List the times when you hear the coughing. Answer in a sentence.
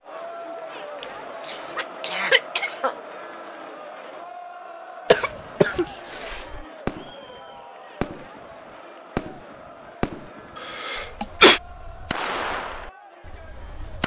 You can hear the coughing from 1.0 to 3.0 s, from 5.1 to 6.5 s and from 10.6 to 11.6 s.